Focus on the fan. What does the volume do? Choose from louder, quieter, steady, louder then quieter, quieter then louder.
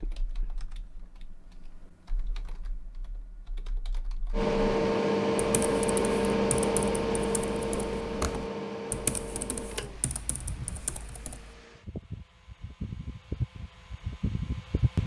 quieter then louder.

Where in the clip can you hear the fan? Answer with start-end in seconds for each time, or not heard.
4.3-15.0.